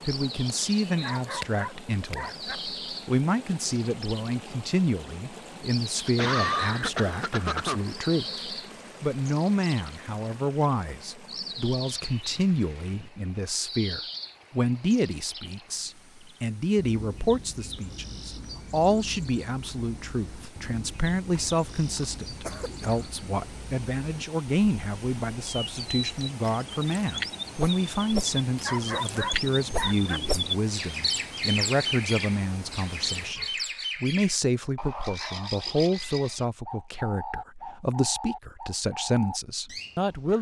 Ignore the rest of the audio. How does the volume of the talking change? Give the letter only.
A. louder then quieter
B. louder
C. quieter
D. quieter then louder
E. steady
E.